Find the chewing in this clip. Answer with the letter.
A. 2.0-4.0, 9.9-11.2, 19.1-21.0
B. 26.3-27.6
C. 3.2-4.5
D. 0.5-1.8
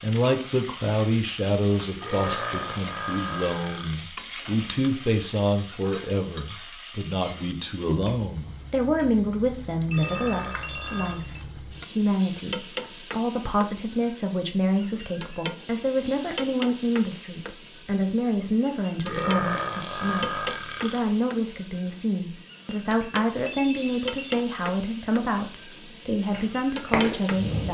B.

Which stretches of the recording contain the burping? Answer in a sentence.
You can hear the burping from 2.0 to 4.0 s, from 9.9 to 11.2 s and from 19.1 to 21.0 s.